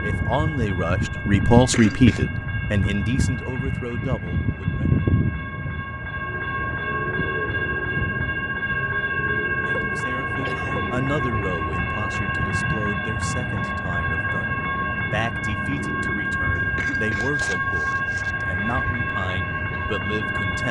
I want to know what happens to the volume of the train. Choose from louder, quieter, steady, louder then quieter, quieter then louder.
steady.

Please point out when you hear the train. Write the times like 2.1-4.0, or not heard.
0.0-20.6.